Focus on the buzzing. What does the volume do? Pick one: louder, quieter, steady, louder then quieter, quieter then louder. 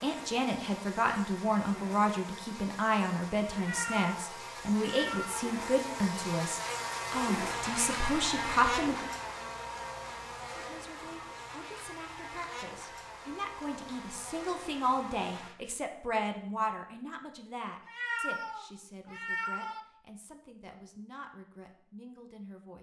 louder then quieter.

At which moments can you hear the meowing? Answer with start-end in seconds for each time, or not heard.
3.5-5.5, 17.9-19.8.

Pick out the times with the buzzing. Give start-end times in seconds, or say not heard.
0.0-15.6.